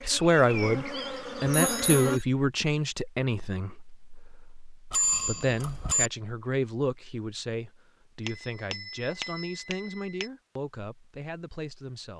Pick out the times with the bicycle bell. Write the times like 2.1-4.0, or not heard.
1.5-2.1, 4.9-6.1, 8.2-10.2.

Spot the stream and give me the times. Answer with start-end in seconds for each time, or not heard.
not heard.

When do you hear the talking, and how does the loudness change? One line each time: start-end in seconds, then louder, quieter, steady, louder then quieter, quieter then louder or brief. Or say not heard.
0.0-12.1 quieter.